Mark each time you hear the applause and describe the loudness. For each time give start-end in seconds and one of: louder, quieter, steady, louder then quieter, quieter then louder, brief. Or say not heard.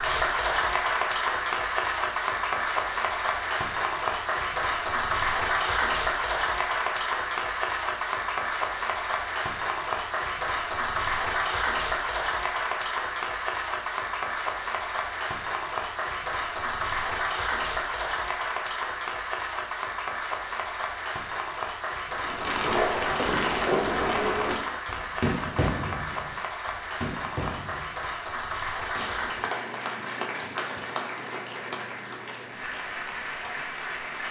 0.0-34.2 quieter.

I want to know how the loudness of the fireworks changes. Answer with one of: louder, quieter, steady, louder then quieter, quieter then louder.
quieter.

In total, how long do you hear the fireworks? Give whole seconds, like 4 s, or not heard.
7 s.